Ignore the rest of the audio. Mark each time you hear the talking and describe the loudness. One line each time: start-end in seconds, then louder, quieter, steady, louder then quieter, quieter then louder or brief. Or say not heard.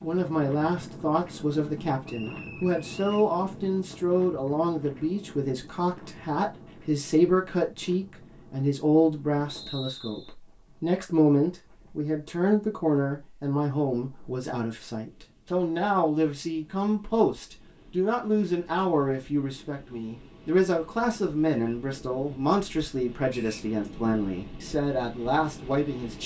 0.0-26.2 steady.